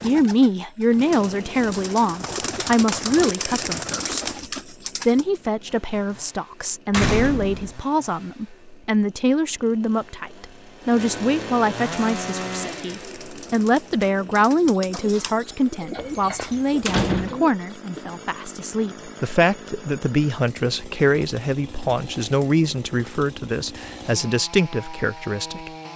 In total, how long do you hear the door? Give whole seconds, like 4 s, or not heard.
2 s.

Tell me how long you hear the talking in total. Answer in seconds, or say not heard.
25 s.